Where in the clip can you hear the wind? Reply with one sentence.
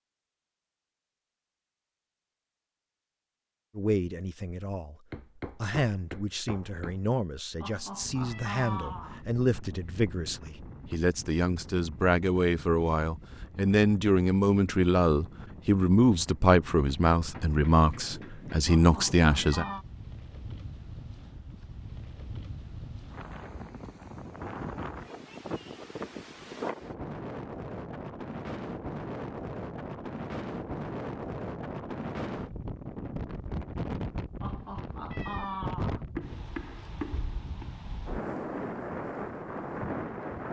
You can hear the wind from 8.0 to 40.4 s.